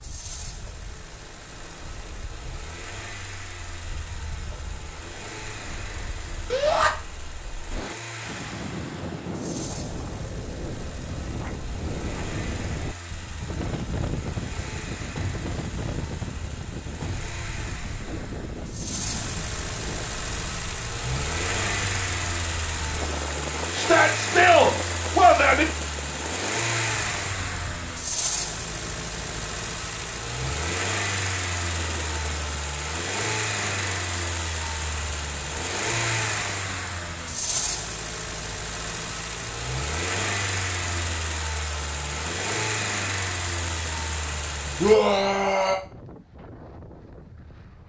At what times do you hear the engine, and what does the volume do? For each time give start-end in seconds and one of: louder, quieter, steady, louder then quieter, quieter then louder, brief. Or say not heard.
0.0-45.0 louder.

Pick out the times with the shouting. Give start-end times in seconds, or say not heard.
6.5-6.9, 23.8-25.6, 44.8-45.8.